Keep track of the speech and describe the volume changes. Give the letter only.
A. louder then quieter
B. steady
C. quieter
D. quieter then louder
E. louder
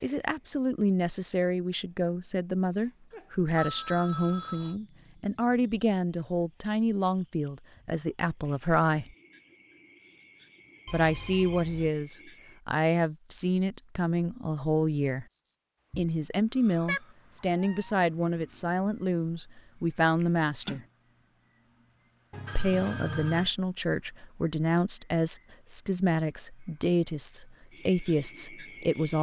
B.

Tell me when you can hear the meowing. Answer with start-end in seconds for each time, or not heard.
16.9-17.9.